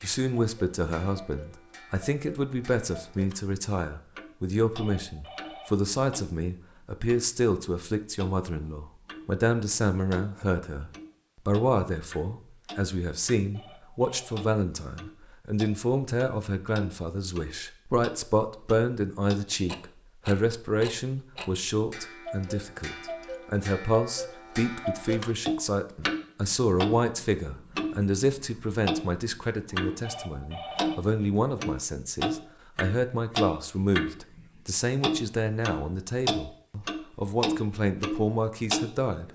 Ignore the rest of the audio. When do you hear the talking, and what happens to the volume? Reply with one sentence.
The talking can be heard from 0.0 to 39.2 s, at a steady volume.